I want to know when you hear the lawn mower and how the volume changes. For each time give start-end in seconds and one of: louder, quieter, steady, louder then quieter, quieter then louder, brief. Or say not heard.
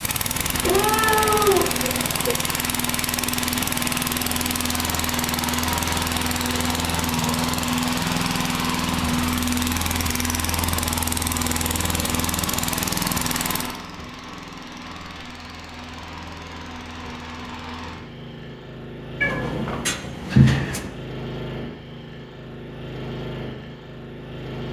0.0-24.6 quieter.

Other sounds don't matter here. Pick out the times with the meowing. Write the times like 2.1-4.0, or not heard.
0.6-2.4, 19.2-20.9.